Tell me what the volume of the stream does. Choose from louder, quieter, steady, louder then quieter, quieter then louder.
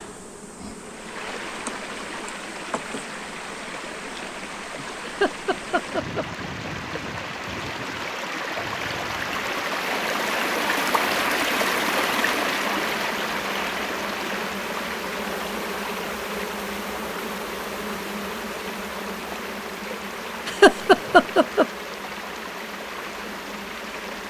louder then quieter.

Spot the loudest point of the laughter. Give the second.
21 s.